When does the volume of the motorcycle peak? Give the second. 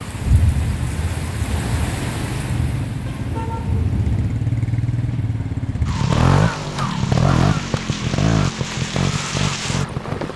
7 s.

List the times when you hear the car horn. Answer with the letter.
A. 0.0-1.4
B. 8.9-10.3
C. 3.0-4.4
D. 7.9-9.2
C.